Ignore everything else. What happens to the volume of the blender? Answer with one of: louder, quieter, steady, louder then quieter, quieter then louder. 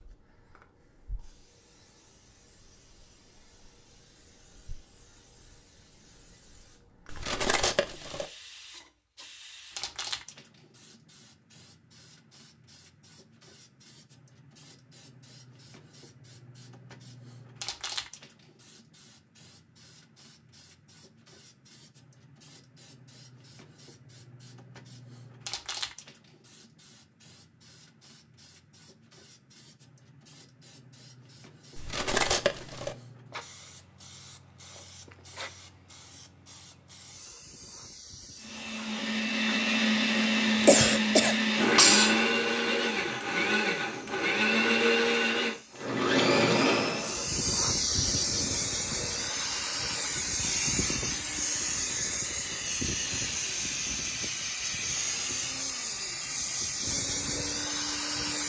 quieter.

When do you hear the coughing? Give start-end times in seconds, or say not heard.
40.6-42.2.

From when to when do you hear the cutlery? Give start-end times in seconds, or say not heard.
7.0-8.2, 31.8-33.0.